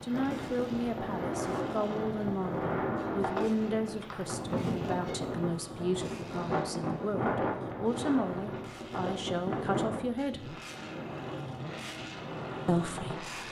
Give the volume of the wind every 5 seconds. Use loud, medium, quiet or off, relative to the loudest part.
loud, loud, medium.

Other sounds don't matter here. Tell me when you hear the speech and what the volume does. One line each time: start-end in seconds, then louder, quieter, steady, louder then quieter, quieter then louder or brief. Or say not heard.
0.0-10.6 steady
12.7-13.3 brief.